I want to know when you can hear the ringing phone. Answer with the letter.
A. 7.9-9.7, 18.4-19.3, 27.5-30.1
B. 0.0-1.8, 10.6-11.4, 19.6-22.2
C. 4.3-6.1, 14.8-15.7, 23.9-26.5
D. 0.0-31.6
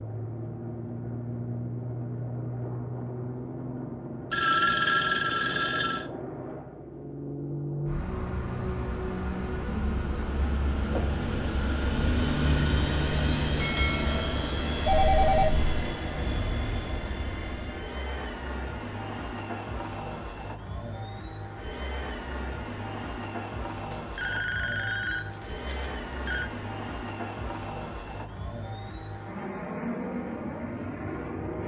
C.